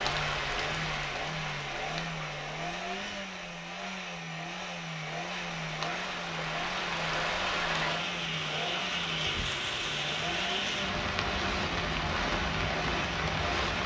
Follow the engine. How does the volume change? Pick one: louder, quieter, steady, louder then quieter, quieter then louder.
steady.